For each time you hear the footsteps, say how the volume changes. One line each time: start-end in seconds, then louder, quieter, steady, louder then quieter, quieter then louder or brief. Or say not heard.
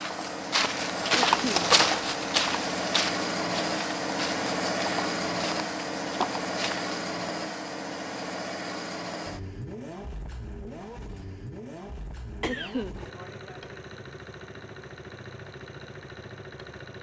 0.0-7.0 quieter.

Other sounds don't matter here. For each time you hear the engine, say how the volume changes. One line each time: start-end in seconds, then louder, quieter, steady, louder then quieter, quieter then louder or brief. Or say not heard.
0.0-16.9 quieter.